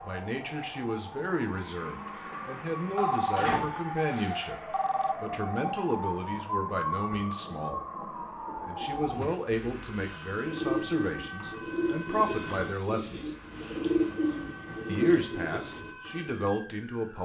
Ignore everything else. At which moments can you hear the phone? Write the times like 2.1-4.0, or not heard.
3.0-5.2.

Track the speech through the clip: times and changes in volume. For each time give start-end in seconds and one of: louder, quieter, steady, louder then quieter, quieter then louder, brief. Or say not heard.
0.0-7.8 steady
8.7-13.3 quieter then louder
14.8-17.2 brief.